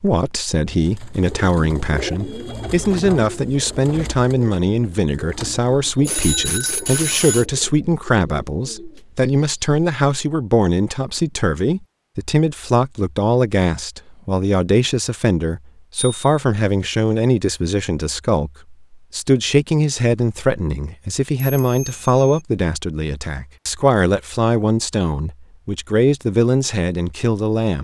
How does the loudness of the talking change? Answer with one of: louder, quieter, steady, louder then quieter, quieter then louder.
steady.